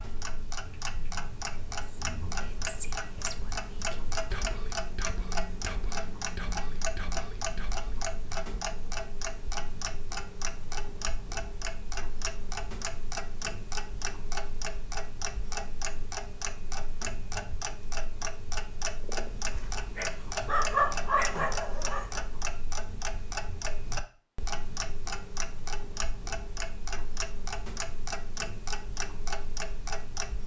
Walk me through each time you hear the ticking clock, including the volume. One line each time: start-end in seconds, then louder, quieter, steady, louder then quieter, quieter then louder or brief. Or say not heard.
0.0-30.4 steady.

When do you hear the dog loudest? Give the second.
21 s.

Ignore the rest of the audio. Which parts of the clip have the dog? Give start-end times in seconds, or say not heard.
19.5-22.2.